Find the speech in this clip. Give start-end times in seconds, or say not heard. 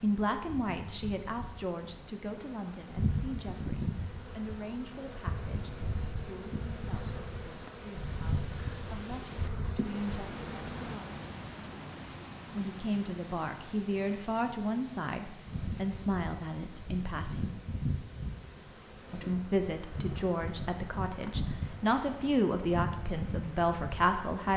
0.0-11.1, 12.5-17.5, 19.1-24.5.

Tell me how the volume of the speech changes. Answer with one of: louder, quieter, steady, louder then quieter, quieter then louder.
quieter then louder.